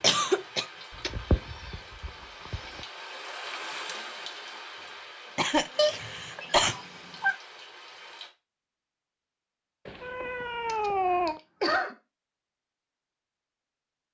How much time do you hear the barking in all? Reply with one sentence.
You can't hear the barking here.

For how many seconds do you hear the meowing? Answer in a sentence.
The meowing can be heard for 5 seconds in total.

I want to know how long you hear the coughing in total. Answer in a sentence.
You can hear the coughing for 3 seconds altogether.